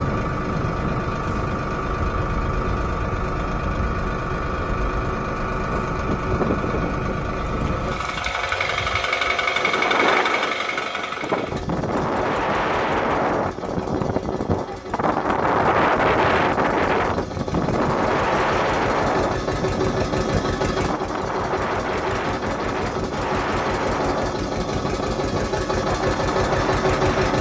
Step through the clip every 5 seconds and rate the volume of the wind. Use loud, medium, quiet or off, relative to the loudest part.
medium, medium, loud, loud, medium, medium.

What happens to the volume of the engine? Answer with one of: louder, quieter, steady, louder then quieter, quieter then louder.
quieter then louder.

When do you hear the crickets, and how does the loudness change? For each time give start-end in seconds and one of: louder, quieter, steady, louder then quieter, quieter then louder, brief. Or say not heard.
not heard.